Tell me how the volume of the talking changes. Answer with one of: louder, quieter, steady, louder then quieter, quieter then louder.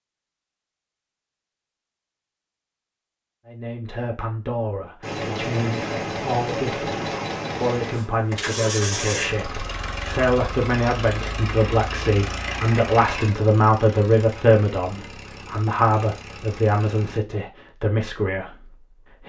louder then quieter.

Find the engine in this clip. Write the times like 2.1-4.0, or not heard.
5.0-17.2.